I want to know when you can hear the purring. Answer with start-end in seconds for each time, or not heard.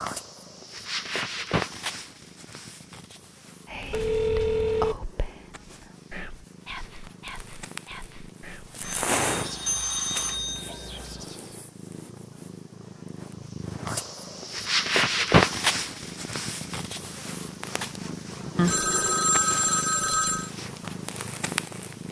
0.0-22.0.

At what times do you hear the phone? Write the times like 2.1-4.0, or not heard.
3.9-5.0, 8.8-11.2, 18.6-20.5.